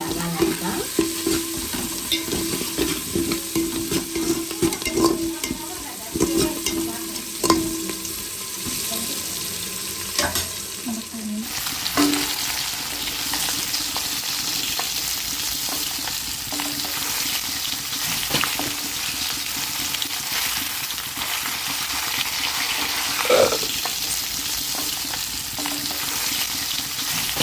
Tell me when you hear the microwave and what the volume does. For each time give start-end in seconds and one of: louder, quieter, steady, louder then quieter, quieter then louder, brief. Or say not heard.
not heard.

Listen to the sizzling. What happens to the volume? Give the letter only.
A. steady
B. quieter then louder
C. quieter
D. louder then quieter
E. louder
A.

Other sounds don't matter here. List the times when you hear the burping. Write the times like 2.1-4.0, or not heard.
23.2-24.1.